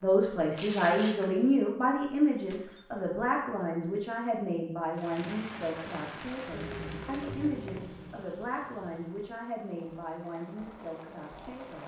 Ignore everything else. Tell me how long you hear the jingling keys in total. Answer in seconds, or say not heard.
2 s.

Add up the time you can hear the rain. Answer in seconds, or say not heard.
7 s.